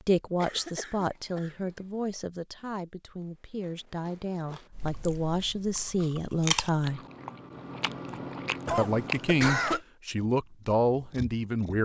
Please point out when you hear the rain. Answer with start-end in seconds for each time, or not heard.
not heard.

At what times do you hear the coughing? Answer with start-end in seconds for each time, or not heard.
0.4-1.7, 8.7-9.8.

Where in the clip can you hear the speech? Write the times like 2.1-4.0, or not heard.
0.1-7.0, 8.8-11.7.